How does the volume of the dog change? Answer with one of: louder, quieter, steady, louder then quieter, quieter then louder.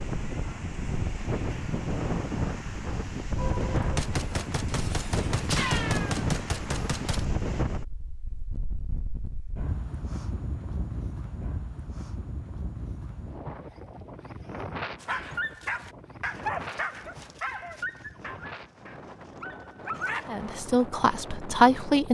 quieter.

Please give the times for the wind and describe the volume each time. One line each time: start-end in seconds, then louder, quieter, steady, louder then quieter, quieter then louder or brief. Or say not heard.
0.0-22.0 quieter.